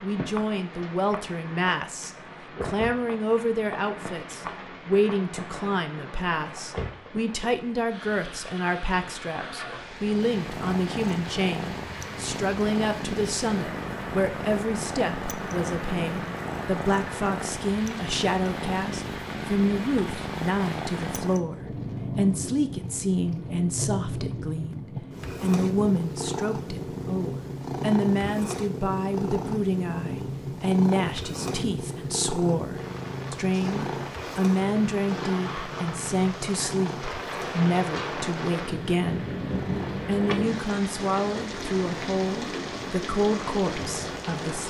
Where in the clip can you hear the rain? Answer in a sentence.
The rain can be heard from 0.0 to 44.6 s.